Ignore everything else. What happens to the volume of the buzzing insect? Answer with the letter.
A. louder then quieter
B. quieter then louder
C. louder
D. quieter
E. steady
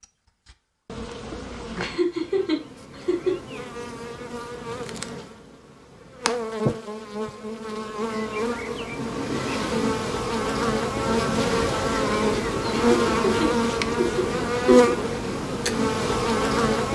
C.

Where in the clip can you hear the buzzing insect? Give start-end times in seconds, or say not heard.
0.0-16.9.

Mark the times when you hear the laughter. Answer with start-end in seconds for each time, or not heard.
1.8-3.4, 12.7-14.9.